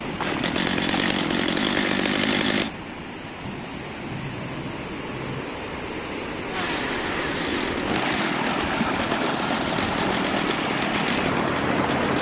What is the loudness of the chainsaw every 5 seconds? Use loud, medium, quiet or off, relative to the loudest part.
loud, medium, medium.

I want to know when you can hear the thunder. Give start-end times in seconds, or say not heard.
3.4-5.5.